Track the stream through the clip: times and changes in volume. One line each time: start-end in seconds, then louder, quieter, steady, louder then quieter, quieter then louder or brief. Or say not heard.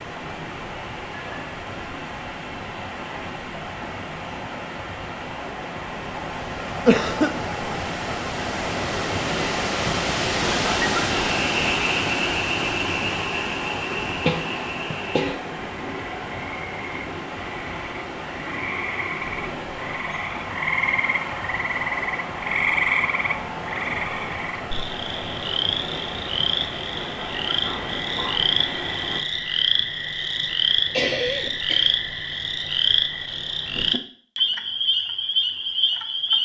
0.0-29.2 louder then quieter.